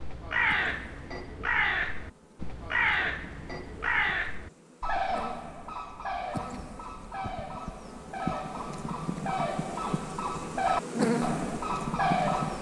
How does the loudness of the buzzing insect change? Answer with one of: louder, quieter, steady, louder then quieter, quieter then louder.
louder.